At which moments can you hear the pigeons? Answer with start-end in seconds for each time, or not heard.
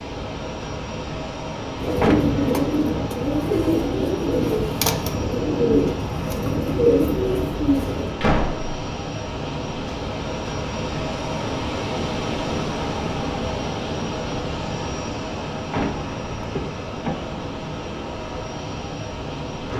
1.8-8.2.